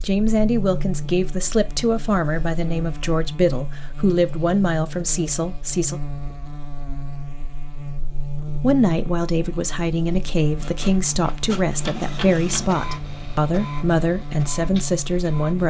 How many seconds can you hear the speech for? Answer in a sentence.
You can hear the speech for 13 seconds altogether.